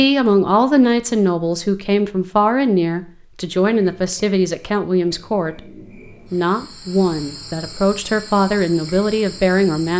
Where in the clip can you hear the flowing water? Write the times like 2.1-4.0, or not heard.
not heard.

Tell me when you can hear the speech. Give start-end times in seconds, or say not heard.
0.0-5.7, 6.3-9.9.